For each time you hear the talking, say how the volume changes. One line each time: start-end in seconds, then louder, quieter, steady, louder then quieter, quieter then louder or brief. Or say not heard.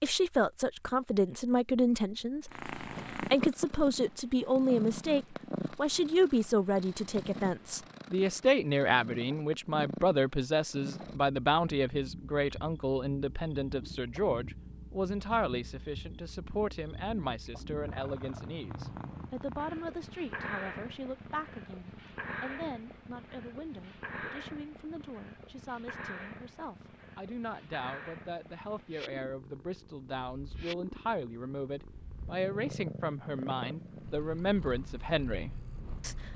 0.0-36.3 quieter then louder.